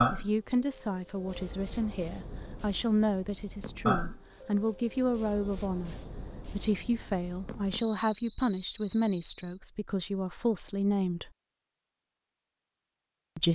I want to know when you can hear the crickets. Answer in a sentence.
The crickets can be heard from 0.0 to 9.6 s.